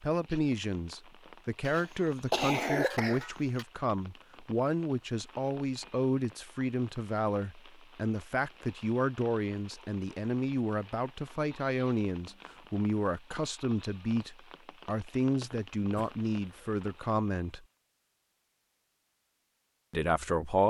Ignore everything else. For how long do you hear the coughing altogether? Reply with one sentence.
You can hear the coughing for 3 seconds altogether.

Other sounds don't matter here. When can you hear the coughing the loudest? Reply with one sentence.
The loudest moment of the coughing is at 2 seconds.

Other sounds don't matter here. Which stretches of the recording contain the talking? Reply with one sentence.
You can hear the talking from 0.0 to 17.6 s and from 19.9 to 20.6 s.